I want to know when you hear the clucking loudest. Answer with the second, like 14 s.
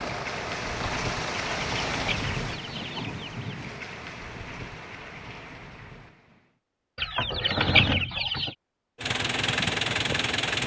8 s.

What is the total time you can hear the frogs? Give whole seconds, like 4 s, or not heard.
not heard.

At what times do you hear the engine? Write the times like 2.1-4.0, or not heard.
0.0-2.2, 8.9-10.6.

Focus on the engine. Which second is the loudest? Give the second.
10 s.